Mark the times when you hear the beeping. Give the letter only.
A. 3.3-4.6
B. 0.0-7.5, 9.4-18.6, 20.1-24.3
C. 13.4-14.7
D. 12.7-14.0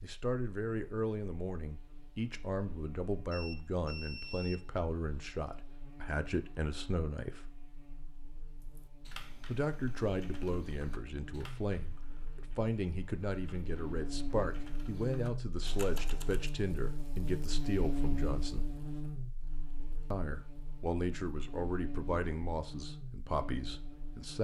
A.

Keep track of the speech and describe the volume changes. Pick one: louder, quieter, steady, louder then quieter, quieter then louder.
steady.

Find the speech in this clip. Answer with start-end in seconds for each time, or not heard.
0.0-7.5, 9.4-18.6, 20.1-24.3.